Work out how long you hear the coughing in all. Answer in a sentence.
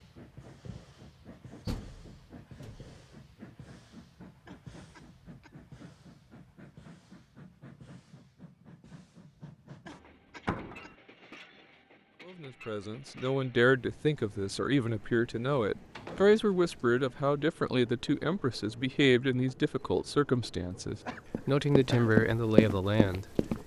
You can hear the coughing for 3 seconds altogether.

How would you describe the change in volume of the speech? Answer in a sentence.
The loudness of the speech stays about the same.